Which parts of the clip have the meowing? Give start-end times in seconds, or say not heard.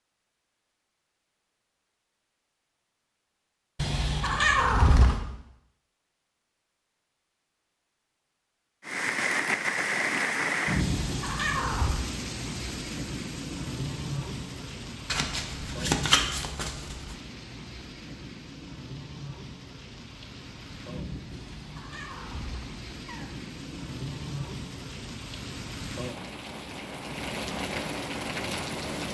3.8-5.2, 10.8-12.1, 21.3-23.3.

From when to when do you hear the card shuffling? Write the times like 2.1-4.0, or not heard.
15.1-17.1.